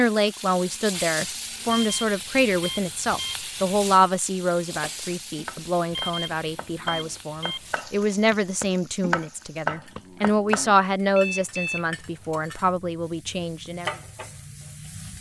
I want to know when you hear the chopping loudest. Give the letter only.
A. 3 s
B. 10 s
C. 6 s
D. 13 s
B.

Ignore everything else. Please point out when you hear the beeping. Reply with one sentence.
The beeping can be heard from 1.6 to 3.4 s, from 5.9 to 7.8 s and from 11.2 to 12.3 s.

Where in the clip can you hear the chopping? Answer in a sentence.
The chopping can be heard from 4.7 to 10.8 s.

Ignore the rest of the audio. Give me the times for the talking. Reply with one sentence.
You can hear the talking from 0.0 to 13.9 s.